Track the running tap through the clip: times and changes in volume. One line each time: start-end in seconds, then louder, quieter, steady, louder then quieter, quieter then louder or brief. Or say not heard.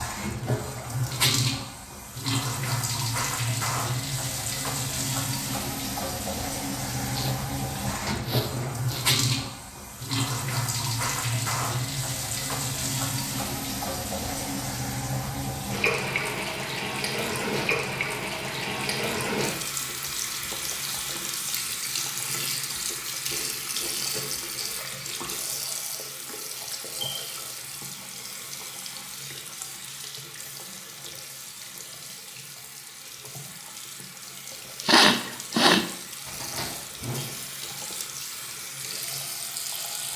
0.0-40.1 quieter.